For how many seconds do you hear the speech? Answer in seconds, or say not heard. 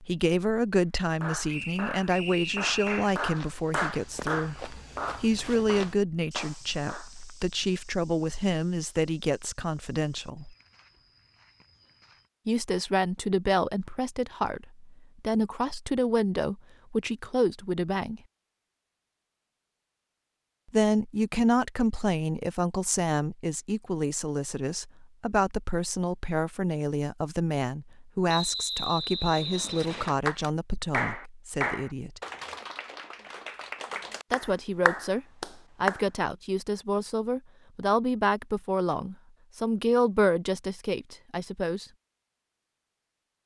35 s.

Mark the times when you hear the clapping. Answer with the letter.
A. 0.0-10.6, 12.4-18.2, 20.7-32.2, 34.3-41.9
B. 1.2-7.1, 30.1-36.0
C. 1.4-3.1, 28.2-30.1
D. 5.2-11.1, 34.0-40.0
B.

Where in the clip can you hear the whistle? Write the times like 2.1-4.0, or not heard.
1.4-3.1, 28.2-30.1.